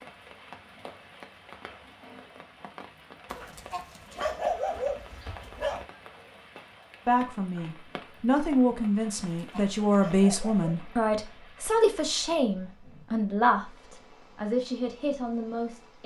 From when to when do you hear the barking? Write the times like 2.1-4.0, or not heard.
3.3-5.8, 9.3-10.8.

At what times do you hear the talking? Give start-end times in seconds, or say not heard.
7.0-16.0.